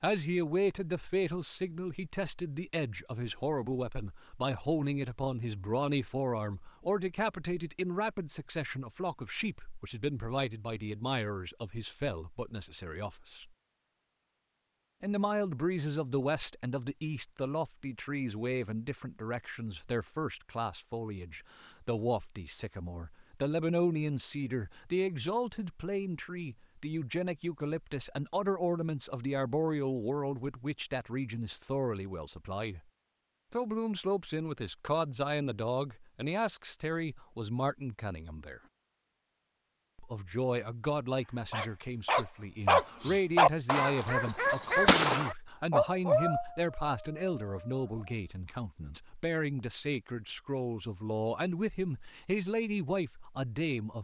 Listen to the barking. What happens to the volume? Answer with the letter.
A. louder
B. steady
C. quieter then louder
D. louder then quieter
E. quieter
E.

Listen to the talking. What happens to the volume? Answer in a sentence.
The loudness of the talking stays about the same.